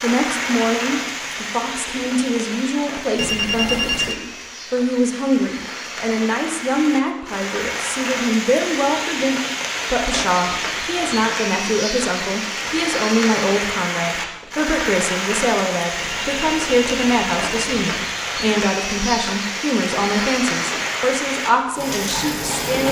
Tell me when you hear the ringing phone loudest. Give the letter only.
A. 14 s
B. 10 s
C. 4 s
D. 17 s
C.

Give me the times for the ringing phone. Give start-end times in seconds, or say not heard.
3.1-4.2, 15.9-17.9.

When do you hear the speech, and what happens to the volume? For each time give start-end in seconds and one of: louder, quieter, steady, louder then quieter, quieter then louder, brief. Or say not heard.
0.0-22.8 steady.